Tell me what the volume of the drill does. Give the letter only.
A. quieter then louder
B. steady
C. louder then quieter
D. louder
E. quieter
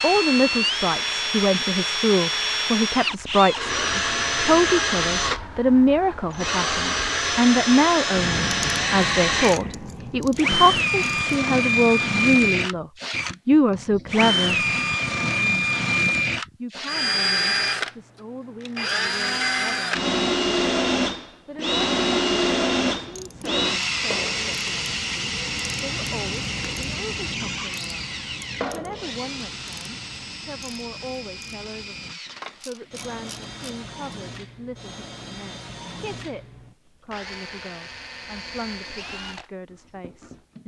E.